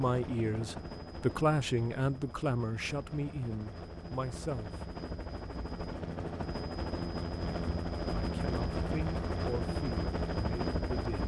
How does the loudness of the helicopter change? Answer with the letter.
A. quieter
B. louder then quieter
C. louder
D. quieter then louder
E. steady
C.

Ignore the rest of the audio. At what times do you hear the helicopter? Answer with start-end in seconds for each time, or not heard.
0.0-11.2.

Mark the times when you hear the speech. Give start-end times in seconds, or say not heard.
0.0-4.9, 8.2-11.2.